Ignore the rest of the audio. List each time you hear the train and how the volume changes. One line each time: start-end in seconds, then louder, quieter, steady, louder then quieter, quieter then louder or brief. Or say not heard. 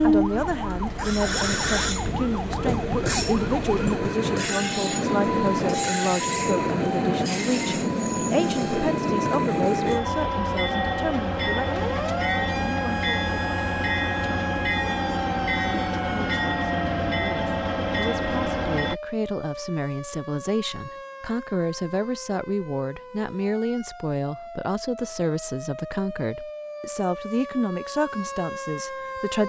0.0-18.9 steady.